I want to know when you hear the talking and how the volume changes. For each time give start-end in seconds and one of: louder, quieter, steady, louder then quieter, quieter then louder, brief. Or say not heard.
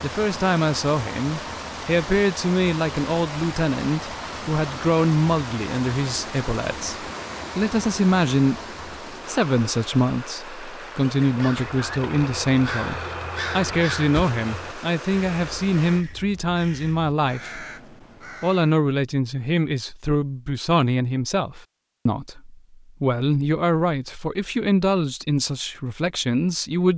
0.0-17.6 steady
18.4-26.9 steady.